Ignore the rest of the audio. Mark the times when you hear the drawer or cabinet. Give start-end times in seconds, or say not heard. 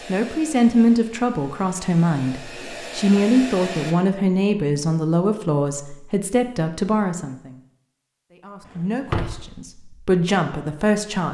8.7-9.6.